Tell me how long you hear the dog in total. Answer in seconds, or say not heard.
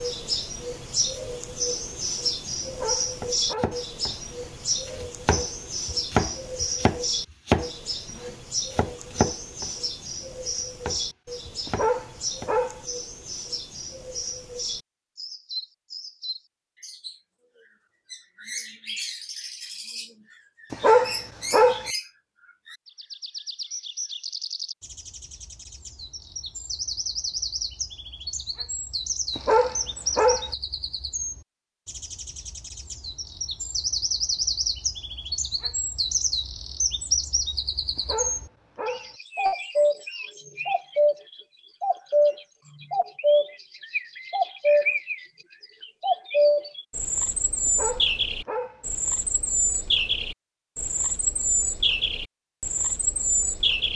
7 s.